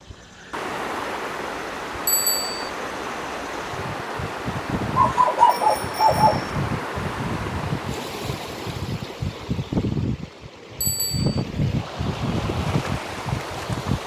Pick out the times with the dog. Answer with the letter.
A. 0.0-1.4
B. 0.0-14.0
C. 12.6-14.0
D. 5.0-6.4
D.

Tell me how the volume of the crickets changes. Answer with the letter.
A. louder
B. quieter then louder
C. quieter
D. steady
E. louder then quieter
A.